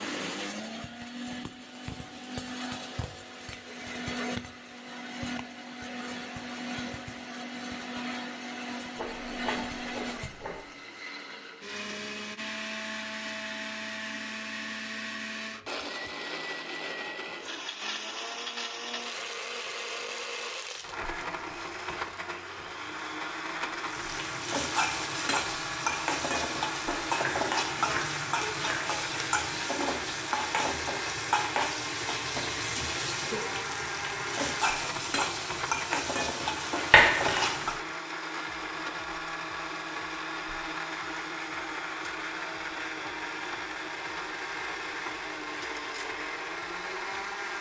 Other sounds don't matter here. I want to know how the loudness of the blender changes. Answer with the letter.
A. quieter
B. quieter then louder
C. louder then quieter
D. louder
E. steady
E.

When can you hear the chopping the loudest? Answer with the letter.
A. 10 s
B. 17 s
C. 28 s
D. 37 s
D.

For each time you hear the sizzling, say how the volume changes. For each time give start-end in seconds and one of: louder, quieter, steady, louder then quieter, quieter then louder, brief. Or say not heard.
23.8-37.8 steady.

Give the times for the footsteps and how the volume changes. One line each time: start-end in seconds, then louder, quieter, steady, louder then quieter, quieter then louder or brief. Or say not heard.
not heard.